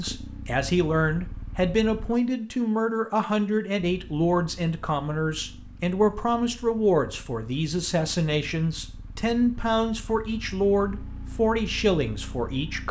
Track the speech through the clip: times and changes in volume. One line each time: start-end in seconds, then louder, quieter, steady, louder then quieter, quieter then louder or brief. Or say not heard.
0.0-12.8 steady.